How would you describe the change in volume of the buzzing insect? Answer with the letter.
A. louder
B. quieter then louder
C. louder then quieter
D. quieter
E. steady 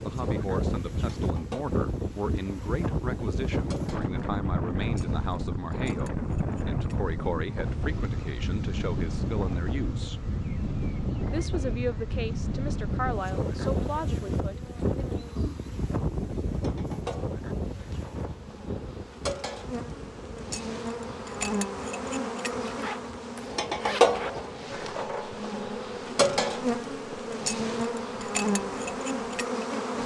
A.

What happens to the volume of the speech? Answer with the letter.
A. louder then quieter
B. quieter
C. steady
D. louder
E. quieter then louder
C.